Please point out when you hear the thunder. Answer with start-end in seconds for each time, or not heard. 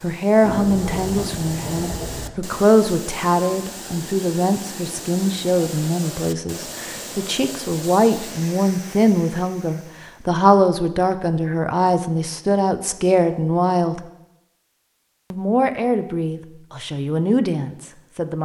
0.4-2.3.